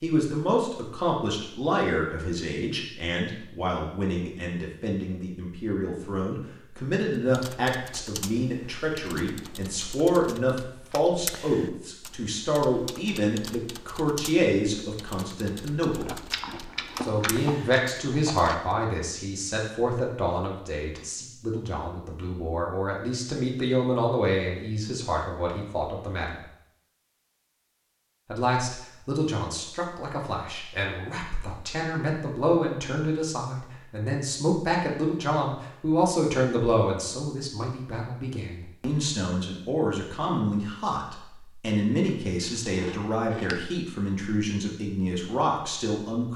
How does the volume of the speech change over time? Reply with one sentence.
The volume of the speech stays about the same.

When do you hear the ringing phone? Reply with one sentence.
You can't hear the ringing phone here.